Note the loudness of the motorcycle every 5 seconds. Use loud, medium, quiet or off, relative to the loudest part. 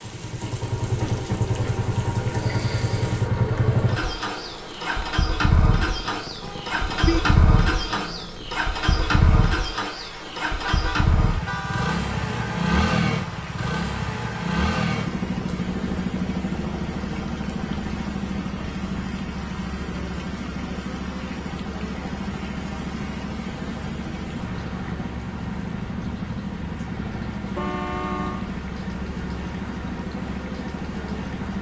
loud, loud, loud, loud, medium, medium, medium.